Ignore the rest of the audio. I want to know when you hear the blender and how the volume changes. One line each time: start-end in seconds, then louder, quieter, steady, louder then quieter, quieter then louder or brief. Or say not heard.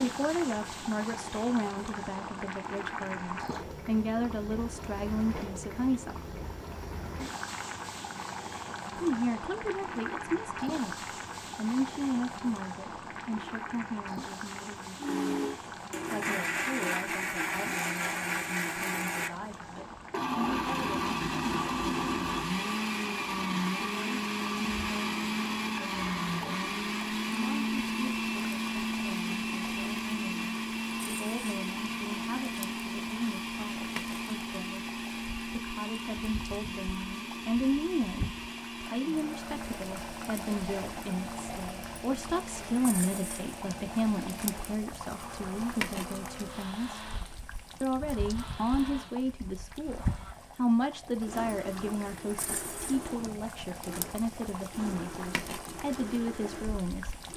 15.0-57.3 quieter.